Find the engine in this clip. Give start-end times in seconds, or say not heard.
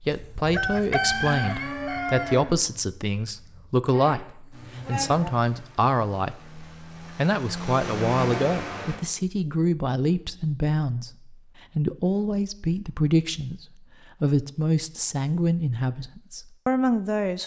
4.5-9.0.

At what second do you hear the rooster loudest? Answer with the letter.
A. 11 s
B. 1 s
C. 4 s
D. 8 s
B.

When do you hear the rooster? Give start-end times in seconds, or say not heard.
0.5-2.5.